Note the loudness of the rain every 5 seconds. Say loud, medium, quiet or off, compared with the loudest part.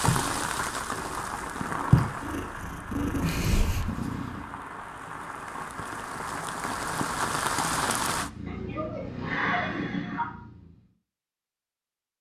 loud, loud, off.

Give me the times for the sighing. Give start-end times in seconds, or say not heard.
8.4-10.3.